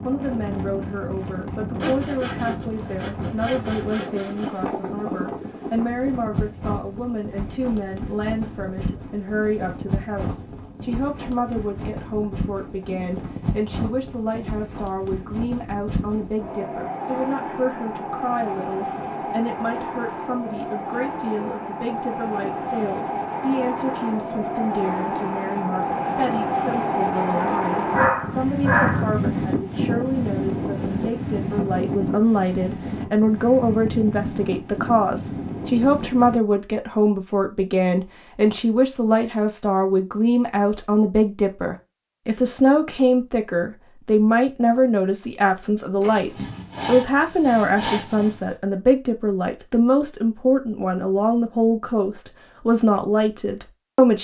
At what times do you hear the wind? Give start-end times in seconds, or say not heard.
0.0-36.4.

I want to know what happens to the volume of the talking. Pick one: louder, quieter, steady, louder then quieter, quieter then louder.
louder.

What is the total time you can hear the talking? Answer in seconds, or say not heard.
54 s.